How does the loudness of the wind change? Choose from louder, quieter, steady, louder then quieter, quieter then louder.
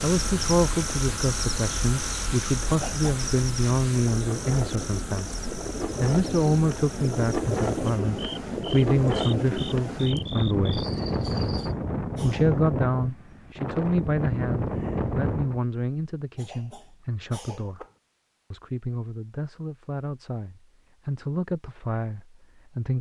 louder.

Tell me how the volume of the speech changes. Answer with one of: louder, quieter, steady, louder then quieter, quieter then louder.
quieter.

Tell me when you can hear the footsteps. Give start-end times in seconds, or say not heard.
not heard.